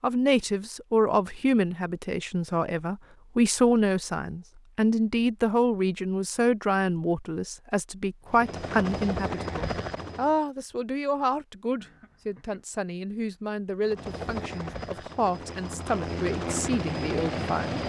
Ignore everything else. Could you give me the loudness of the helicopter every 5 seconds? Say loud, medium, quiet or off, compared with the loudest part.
off, loud, medium, loud.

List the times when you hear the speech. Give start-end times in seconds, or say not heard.
0.0-17.8.